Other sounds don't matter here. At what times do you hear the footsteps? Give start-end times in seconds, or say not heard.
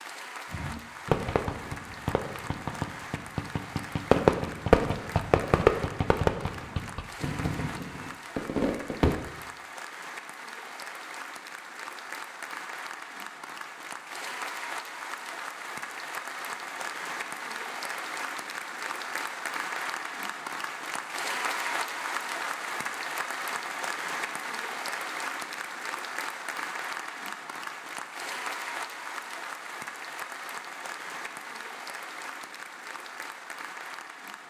not heard.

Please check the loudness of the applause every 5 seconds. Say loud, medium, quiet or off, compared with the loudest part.
medium, medium, medium, loud, loud, loud, medium.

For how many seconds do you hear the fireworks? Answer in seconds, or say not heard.
9 s.